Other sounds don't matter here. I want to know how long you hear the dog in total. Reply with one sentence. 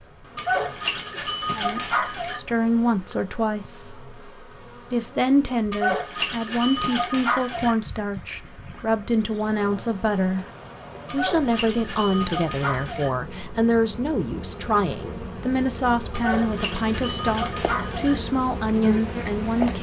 You can hear the dog for 8 seconds altogether.